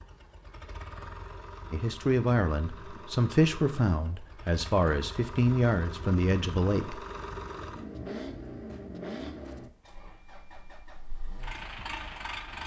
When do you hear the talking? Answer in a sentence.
The talking can be heard from 1.7 to 7.0 s.